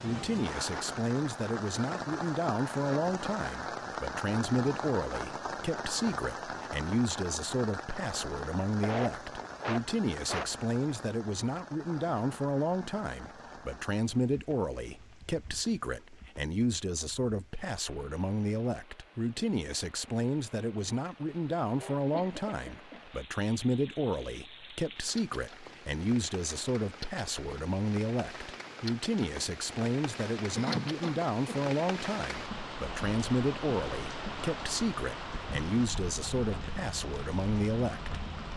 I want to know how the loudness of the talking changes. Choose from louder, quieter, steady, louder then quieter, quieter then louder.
steady.